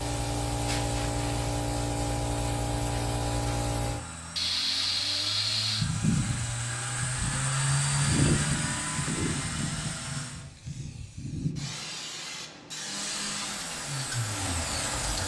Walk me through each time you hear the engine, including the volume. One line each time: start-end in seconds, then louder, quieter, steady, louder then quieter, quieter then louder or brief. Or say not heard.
0.0-10.4 louder
12.8-15.2 brief.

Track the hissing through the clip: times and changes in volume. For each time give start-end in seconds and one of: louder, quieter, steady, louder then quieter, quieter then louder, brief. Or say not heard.
0.0-15.2 quieter.